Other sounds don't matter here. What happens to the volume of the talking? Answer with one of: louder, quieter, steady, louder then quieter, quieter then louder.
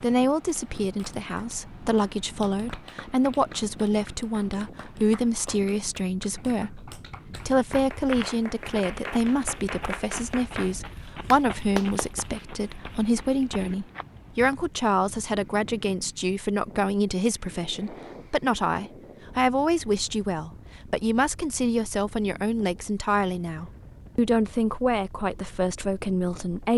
steady.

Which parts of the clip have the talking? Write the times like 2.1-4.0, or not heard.
0.0-26.7.